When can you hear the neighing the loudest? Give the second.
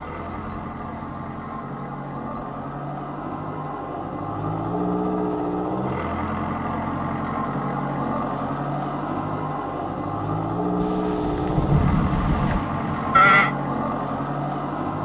13 s.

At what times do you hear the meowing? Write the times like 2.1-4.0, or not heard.
not heard.